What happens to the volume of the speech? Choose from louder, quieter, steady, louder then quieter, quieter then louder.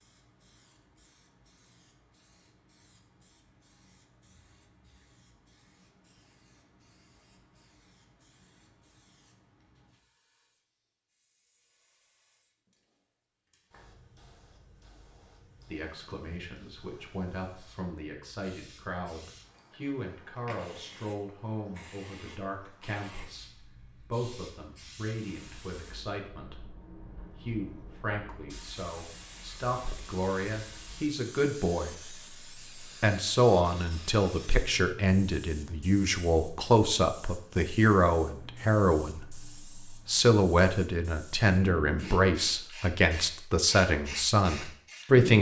louder.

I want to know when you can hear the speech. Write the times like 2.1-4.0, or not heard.
15.7-45.3.